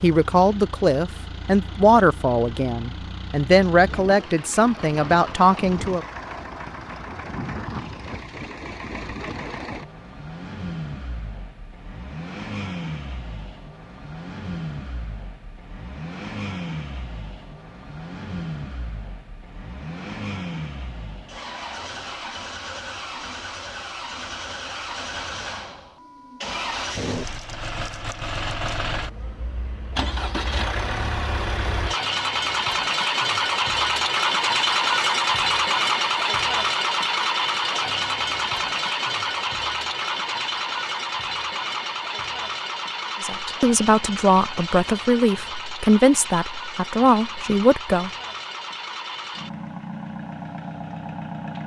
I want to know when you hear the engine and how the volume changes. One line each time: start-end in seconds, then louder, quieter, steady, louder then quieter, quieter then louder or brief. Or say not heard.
0.0-51.6 louder then quieter.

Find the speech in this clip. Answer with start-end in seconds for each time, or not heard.
0.0-6.0, 43.2-48.1.